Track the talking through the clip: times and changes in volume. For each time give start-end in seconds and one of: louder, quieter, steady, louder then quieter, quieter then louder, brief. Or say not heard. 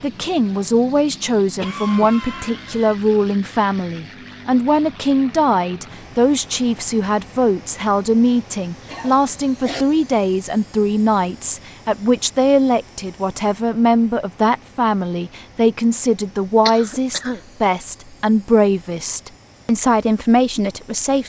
0.0-21.2 steady.